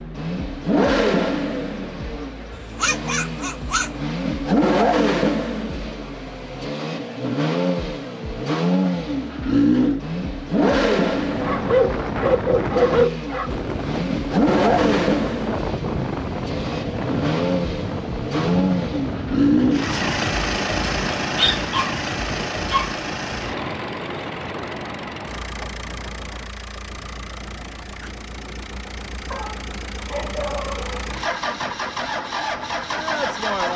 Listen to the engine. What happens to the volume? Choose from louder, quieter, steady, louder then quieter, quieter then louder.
quieter.